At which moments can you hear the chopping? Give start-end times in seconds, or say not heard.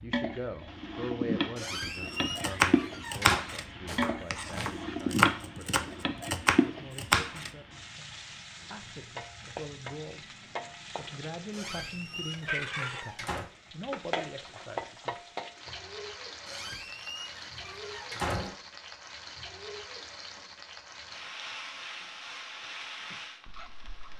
2.3-7.5.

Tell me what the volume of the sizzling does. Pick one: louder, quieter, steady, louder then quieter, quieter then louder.
quieter.